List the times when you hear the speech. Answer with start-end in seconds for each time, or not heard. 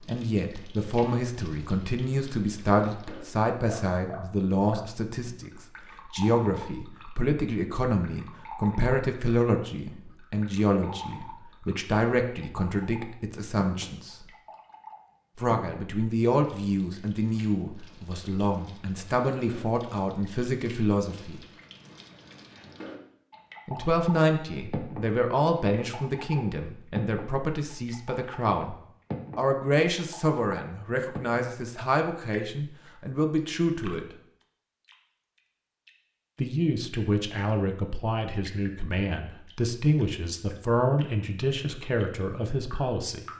0.1-14.2, 15.3-21.4, 23.6-28.8, 29.4-34.0, 36.4-43.2.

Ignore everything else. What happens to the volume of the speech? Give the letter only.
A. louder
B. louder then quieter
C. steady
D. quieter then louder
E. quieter
C.